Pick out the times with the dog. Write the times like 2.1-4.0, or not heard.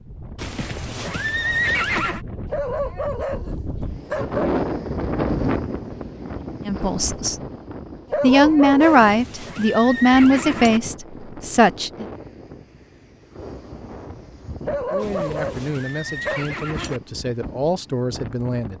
2.5-4.5, 8.1-9.2, 14.7-16.6.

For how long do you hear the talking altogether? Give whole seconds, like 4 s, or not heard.
8 s.